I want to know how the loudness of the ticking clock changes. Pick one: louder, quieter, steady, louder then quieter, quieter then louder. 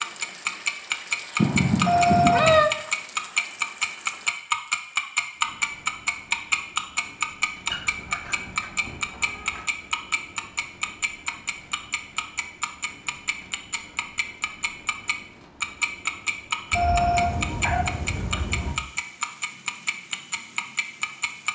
quieter.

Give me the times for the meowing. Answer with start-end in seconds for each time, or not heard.
1.4-2.7, 7.7-9.7, 16.7-18.8.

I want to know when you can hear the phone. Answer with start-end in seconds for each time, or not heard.
1.9-2.5, 16.7-17.6.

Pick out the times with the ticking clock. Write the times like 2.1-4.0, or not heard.
0.0-21.5.